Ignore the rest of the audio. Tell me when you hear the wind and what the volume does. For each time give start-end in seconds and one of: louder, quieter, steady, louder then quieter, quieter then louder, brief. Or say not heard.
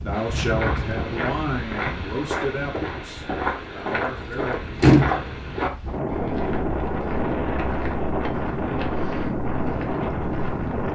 0.0-10.9 quieter then louder.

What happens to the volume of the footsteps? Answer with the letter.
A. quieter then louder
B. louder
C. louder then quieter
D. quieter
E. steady
D.